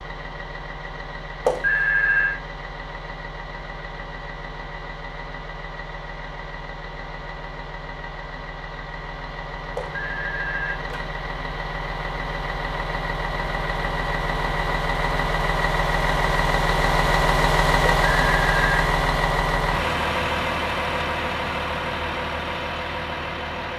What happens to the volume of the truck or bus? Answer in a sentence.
The volume of the truck or bus goes up.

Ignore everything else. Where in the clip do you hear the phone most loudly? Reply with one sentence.
The loudest moment of the phone is at 2 seconds.